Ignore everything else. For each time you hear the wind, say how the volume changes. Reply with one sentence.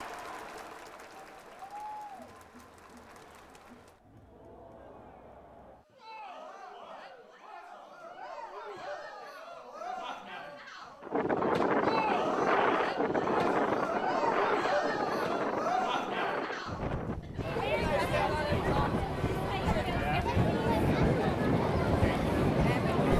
You can hear the wind from 11.0 to 23.1 s, getting quieter then louder.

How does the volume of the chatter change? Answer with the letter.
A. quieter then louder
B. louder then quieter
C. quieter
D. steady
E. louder
E.